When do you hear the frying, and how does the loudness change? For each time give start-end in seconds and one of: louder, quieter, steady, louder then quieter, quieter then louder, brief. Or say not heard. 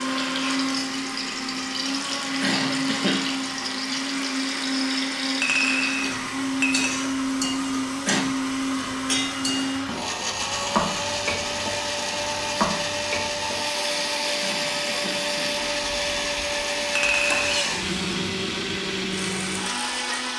0.0-20.3 steady.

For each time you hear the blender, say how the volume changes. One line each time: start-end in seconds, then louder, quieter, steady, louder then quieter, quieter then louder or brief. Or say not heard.
0.0-20.3 steady.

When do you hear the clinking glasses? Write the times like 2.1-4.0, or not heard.
5.4-6.8, 16.9-17.6.